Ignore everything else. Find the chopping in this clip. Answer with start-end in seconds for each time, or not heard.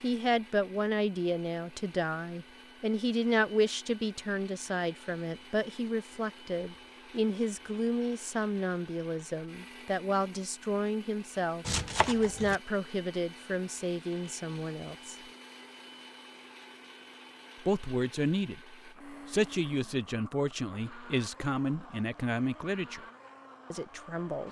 11.7-12.6.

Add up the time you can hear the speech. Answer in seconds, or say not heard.
21 s.